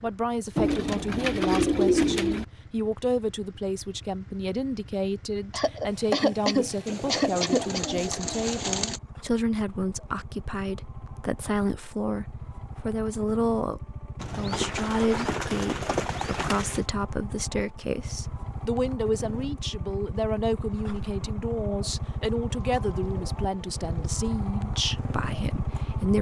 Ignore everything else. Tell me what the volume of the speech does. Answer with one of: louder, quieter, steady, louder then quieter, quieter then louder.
steady.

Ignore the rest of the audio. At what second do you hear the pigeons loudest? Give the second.
2 s.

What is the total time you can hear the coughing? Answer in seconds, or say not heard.
2 s.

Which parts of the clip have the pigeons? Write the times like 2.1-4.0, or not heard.
0.6-2.5, 6.8-9.0, 14.2-16.8, 22.5-24.1.